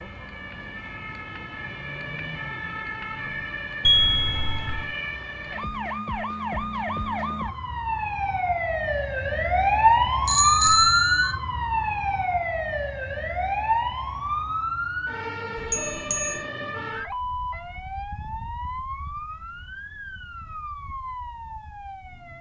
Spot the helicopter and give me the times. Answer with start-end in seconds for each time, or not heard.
not heard.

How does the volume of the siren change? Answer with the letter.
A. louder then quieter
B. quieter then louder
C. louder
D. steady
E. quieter
A.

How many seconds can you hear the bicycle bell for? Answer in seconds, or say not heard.
3 s.